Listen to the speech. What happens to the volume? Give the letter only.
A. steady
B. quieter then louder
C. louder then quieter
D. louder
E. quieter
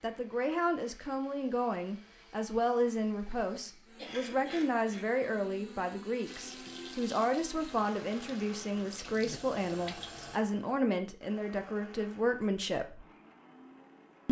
A.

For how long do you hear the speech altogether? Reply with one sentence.
The speech can be heard for 13 seconds in total.